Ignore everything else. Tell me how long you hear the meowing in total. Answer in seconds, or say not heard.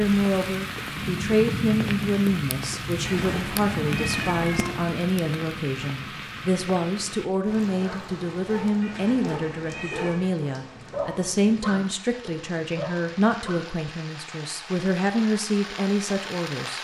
3 s.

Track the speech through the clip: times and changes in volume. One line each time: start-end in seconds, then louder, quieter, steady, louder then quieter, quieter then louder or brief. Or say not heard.
0.0-16.7 steady.